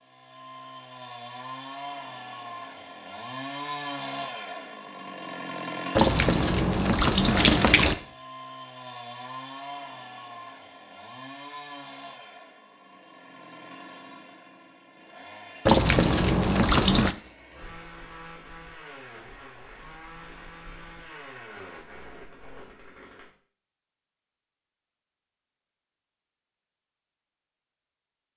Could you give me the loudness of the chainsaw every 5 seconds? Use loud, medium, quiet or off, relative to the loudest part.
loud, loud, medium, medium, medium, off.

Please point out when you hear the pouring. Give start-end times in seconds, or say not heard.
6.0-8.0, 15.7-17.1.